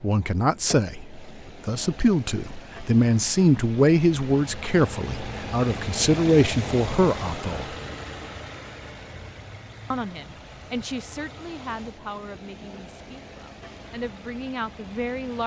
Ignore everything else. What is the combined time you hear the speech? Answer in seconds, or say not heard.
13 s.